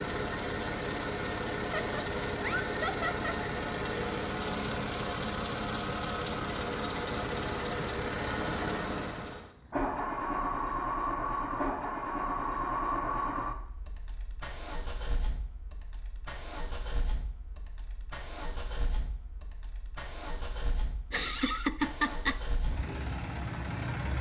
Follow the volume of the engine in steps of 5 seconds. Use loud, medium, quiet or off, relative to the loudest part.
loud, loud, loud, quiet, medium.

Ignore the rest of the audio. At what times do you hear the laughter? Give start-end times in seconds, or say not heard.
1.6-3.5, 21.1-22.4.